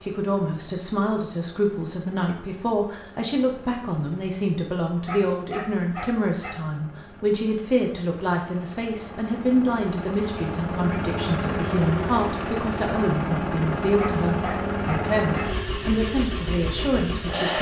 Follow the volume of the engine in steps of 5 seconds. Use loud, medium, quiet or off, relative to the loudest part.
quiet, quiet, loud, loud.